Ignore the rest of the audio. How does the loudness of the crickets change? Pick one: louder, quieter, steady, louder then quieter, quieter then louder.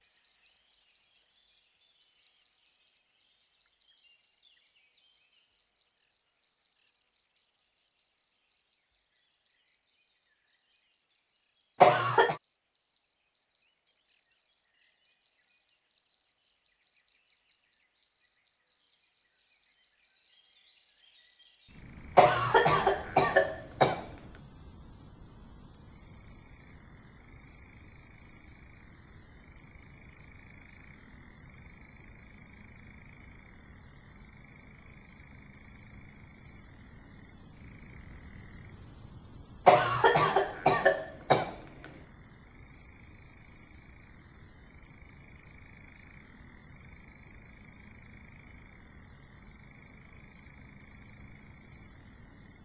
quieter.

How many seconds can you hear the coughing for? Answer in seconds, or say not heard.
4 s.